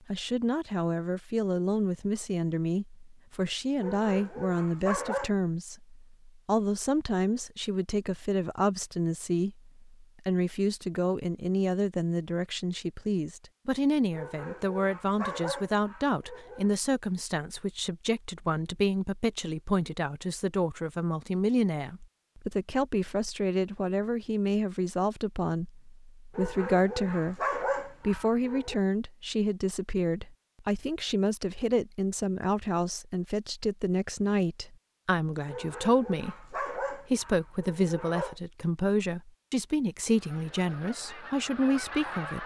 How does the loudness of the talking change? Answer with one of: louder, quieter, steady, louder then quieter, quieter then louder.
steady.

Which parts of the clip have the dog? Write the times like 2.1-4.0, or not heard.
3.8-5.3, 14.1-16.7, 26.4-28.8, 35.5-38.4.